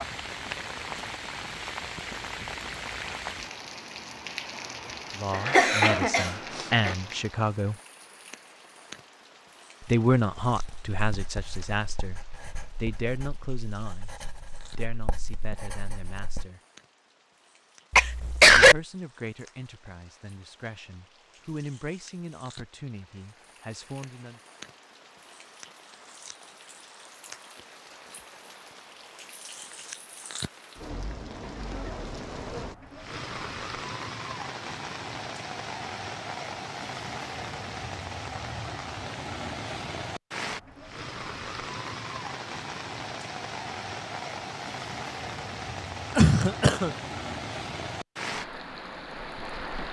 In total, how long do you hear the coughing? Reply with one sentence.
You can hear the coughing for 3 seconds altogether.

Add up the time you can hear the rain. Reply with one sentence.
You can hear the rain for 50 seconds altogether.